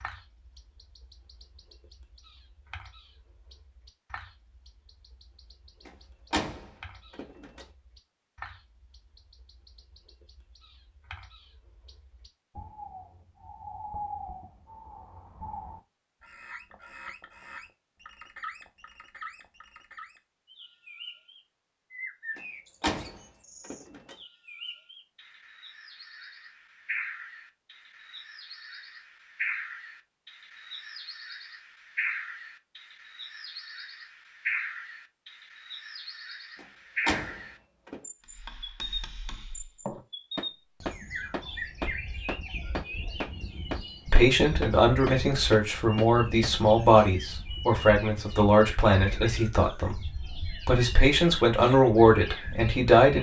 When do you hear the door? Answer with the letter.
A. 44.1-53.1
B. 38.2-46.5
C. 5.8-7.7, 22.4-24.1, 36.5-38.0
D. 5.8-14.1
C.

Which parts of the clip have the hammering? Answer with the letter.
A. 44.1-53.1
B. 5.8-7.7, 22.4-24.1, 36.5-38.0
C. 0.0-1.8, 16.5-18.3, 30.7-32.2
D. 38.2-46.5
D.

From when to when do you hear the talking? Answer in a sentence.
The talking can be heard from 44.1 to 53.1 s.